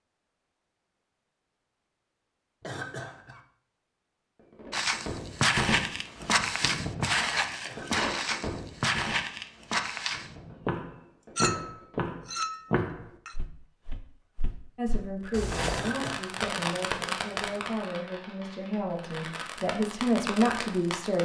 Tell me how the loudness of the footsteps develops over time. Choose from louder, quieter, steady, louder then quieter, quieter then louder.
quieter.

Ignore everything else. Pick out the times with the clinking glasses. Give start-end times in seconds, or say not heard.
11.3-13.3.